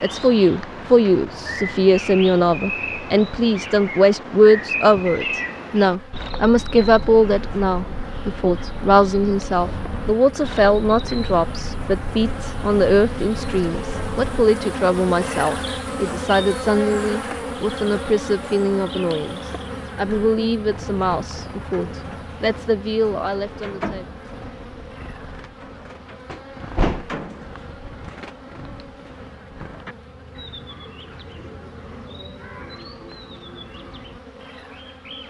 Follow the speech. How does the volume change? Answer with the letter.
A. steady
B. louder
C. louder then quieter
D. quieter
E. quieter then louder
D.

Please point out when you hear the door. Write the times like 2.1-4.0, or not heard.
26.3-27.2.